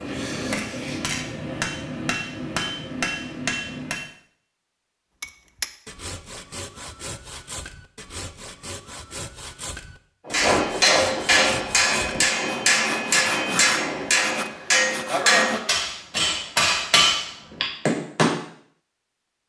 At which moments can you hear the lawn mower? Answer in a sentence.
You can't hear the lawn mower here.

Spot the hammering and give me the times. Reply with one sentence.
The hammering can be heard from 0.0 to 4.0 s and from 10.2 to 18.4 s.